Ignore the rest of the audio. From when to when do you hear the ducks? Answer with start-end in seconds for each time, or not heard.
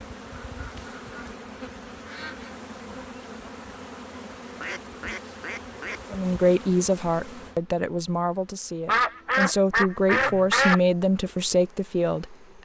0.4-2.5, 4.6-6.0, 8.8-10.8.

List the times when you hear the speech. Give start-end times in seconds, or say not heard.
6.1-12.6.